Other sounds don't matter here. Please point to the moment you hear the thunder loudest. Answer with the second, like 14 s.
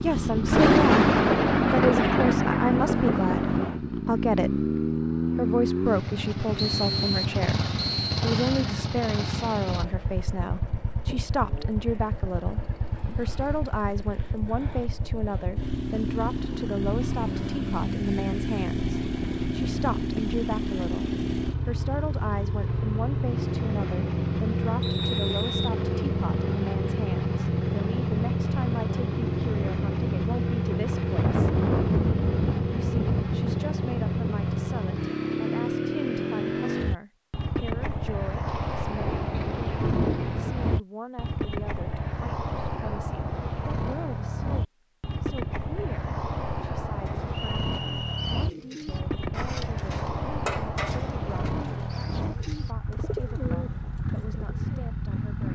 1 s.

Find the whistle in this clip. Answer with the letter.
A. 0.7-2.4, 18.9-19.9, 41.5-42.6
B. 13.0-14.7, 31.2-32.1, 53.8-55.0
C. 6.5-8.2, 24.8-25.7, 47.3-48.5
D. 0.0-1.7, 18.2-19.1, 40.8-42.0
C.